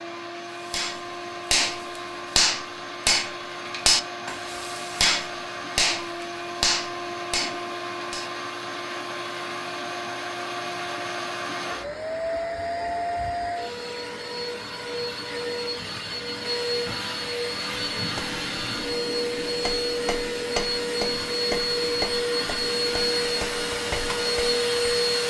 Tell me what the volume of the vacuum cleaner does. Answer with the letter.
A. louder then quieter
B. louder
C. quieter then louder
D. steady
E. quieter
B.